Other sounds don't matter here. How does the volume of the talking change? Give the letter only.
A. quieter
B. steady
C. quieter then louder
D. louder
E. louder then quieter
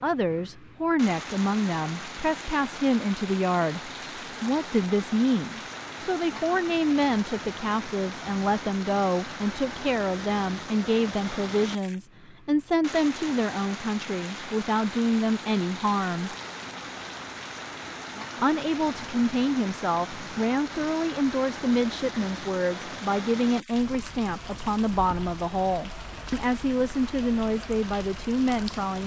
B.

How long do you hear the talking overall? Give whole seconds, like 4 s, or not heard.
27 s.